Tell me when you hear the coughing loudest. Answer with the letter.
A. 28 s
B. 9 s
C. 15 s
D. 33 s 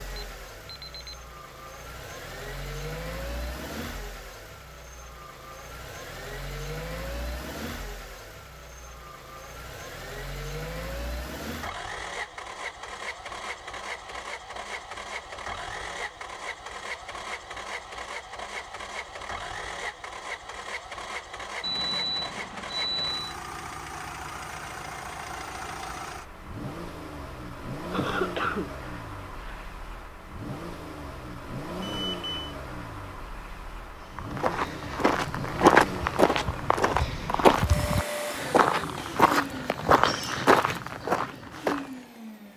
A.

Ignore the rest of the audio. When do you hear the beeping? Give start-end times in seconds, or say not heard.
0.1-1.1, 21.6-23.4, 31.8-32.5.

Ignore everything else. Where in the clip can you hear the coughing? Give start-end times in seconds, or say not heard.
27.9-29.6.